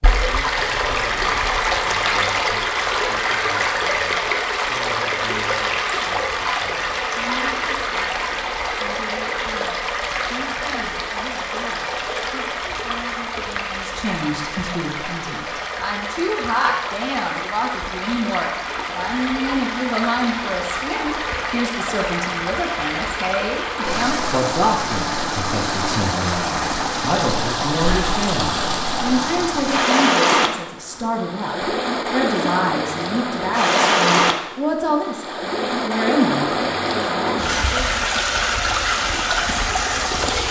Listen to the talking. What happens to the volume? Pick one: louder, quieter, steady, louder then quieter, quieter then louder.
louder.